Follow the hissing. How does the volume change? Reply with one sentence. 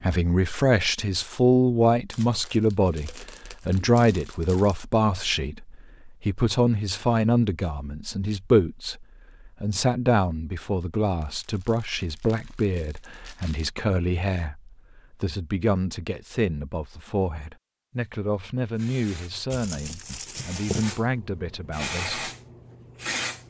The loudness of the hissing goes up, then down.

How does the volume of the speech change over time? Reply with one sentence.
The loudness of the speech goes down.